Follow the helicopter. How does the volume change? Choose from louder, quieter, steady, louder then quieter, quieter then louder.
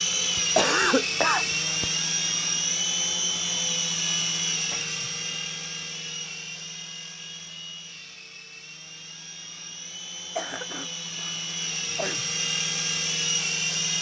quieter then louder.